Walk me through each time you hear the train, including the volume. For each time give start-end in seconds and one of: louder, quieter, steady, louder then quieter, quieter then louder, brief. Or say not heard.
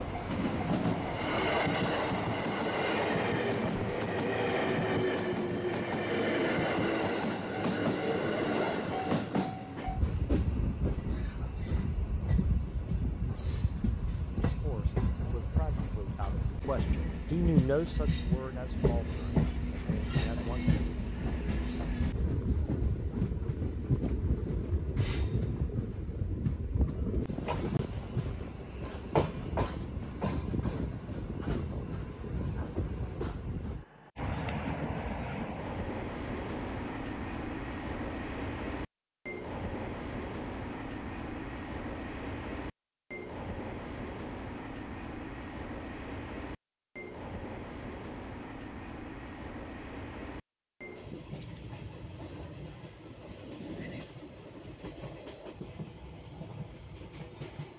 0.0-57.7 quieter.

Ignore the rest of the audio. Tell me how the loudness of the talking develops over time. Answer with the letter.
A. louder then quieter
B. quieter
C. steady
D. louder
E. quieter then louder
A.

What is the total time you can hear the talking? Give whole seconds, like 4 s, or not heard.
6 s.